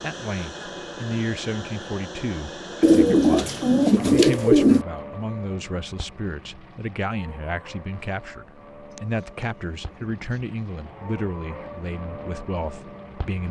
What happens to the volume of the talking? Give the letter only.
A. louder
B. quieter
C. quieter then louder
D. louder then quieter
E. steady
E.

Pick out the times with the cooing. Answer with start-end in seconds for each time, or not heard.
2.8-4.8, 8.9-10.4.